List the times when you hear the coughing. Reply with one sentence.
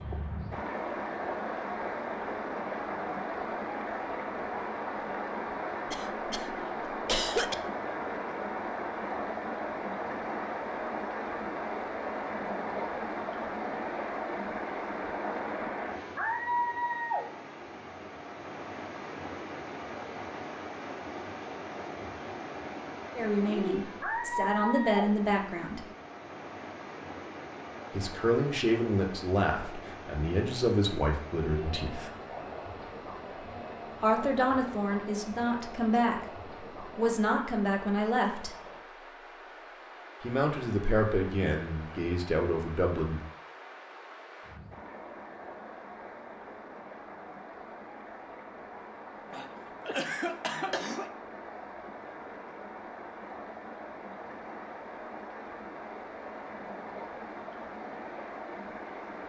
The coughing can be heard from 5.9 to 7.5 s and from 49.3 to 51.1 s.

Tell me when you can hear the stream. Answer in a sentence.
You can hear the stream from 0.0 to 59.2 s.